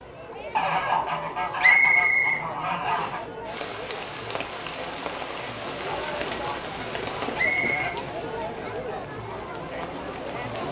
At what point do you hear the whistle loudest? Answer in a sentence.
The loudest moment of the whistle is at 2 seconds.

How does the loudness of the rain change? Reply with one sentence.
The volume of the rain goes down.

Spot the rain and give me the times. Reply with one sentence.
The rain can be heard from 3.5 to 10.6 s.